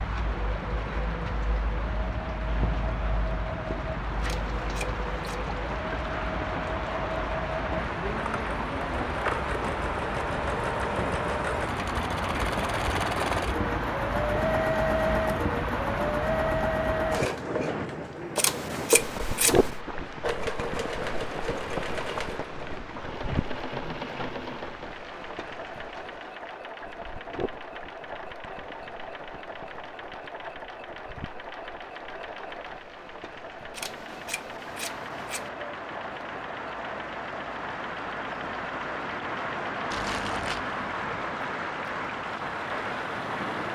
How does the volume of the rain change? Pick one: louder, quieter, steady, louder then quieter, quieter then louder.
quieter then louder.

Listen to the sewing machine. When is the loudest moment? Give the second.
15 s.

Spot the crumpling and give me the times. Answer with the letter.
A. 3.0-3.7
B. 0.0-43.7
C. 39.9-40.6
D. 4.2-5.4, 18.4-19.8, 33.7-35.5
C.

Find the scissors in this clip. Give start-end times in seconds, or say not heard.
4.2-5.4, 18.4-19.8, 33.7-35.5.